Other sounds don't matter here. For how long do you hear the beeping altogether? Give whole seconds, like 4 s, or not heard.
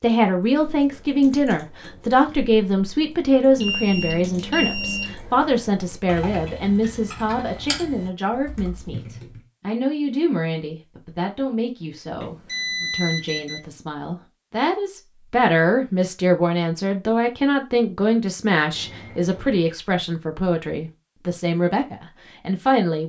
4 s.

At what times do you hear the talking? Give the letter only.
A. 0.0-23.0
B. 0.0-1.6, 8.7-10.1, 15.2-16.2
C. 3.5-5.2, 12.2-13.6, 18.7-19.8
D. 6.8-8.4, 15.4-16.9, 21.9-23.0
A.